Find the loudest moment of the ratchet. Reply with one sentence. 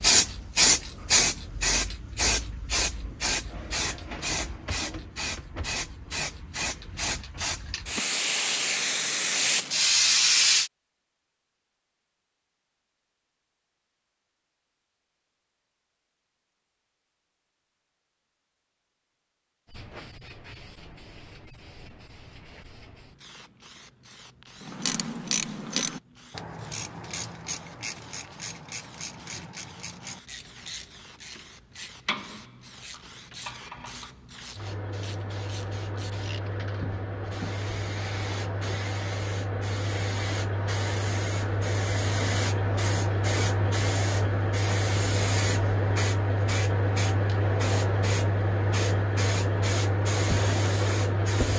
The volume of the ratchet peaks at 25 seconds.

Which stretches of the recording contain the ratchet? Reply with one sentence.
You can hear the ratchet from 24.6 to 36.5 s.